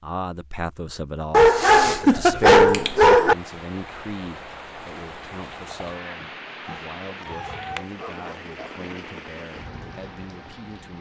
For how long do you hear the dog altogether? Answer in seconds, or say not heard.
4 s.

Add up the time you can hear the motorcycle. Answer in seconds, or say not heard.
not heard.